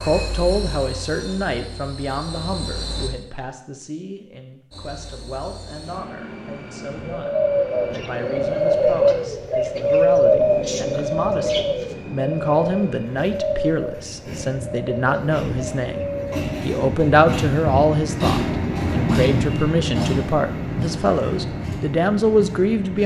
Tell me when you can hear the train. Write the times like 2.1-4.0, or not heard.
0.0-3.1, 4.7-23.0.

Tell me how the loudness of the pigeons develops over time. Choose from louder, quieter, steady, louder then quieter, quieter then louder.
quieter.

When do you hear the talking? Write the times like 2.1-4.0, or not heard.
0.0-23.0.